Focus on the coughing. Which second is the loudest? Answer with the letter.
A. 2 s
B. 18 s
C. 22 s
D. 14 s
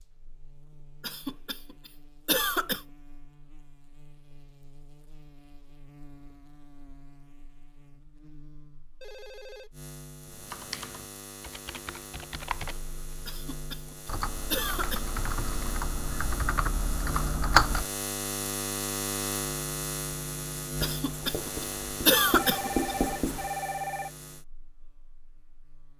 C.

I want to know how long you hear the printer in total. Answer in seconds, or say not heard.
not heard.